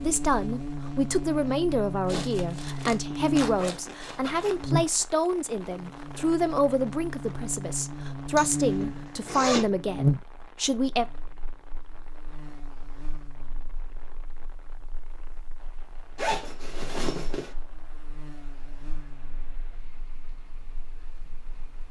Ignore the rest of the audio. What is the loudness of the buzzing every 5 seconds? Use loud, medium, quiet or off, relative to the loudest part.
loud, loud, loud, quiet, quiet.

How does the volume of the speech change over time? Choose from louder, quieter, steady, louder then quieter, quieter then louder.
steady.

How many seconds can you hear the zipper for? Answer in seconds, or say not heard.
5 s.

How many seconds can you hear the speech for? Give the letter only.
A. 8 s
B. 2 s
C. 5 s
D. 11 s
D.